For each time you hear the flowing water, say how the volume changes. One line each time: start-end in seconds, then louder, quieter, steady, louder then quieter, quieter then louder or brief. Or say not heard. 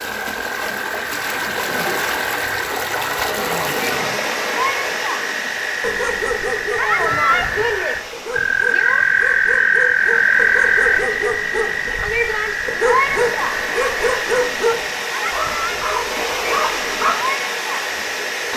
0.0-18.5 quieter then louder.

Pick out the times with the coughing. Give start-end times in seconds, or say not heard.
not heard.